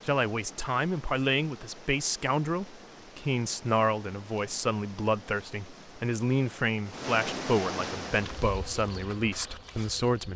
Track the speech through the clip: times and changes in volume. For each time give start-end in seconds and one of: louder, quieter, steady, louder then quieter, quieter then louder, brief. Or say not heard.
0.1-10.3 steady.